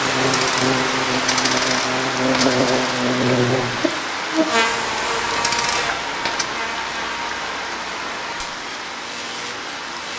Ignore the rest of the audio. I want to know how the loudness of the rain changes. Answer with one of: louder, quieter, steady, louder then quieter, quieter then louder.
quieter.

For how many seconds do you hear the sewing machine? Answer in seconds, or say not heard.
not heard.